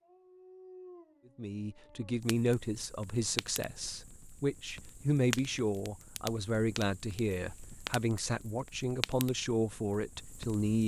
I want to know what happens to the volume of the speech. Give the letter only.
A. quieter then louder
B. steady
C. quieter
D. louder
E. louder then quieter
B.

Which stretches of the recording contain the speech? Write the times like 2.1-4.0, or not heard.
1.4-10.8.